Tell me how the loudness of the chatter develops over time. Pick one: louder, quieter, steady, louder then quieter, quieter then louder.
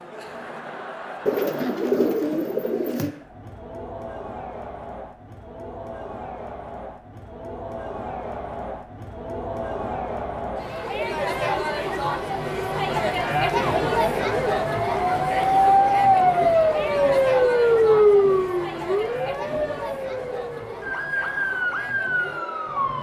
louder then quieter.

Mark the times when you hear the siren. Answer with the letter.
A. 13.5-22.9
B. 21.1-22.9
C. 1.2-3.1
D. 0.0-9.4
A.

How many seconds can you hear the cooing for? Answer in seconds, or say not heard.
2 s.